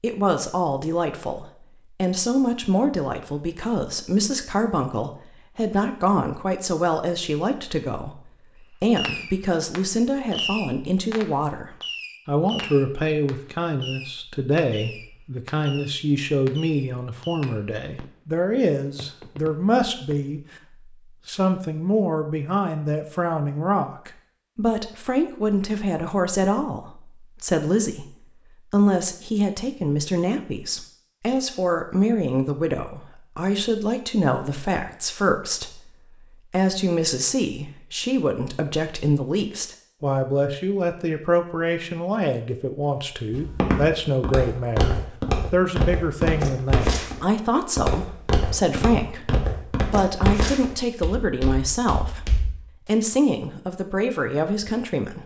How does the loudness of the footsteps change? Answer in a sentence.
The loudness of the footsteps goes down.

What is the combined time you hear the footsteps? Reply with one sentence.
The footsteps can be heard for 9 seconds in total.